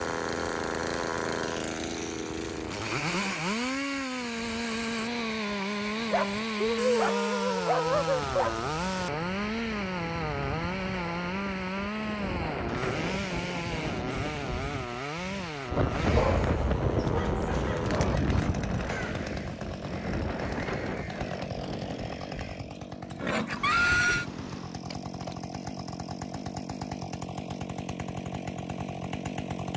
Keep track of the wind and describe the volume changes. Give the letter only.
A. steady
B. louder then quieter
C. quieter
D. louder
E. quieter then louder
B.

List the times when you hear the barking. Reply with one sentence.
You can hear the barking from 6.1 to 8.6 s and from 16.1 to 18.2 s.